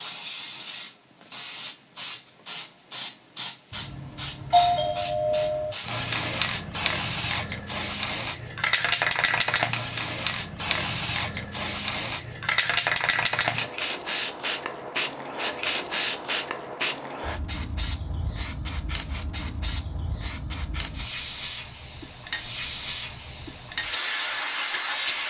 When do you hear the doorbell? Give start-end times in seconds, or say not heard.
3.7-5.8.